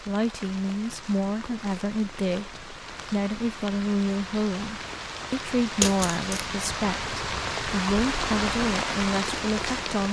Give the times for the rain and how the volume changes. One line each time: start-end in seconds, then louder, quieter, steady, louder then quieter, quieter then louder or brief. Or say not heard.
0.0-10.0 louder.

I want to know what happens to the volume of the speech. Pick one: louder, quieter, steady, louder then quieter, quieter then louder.
steady.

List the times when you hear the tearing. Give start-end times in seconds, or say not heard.
5.8-6.5.